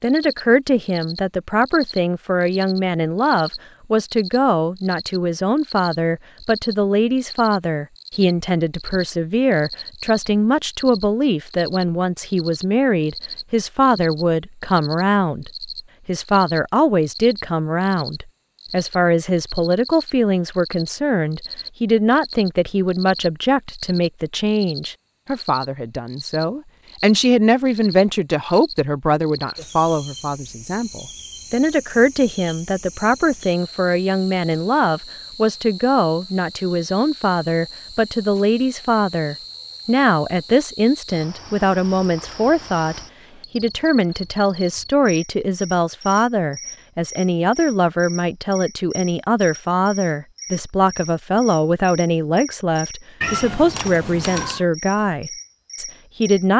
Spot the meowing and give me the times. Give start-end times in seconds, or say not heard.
53.2-54.6.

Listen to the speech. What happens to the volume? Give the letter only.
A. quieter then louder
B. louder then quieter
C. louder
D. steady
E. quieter
D.